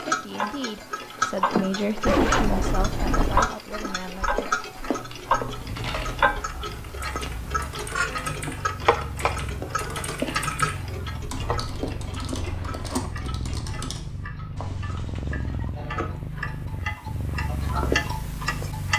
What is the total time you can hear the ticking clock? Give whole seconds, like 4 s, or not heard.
19 s.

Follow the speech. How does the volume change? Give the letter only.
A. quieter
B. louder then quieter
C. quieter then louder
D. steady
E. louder
B.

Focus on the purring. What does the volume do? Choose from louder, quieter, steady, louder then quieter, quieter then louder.
louder.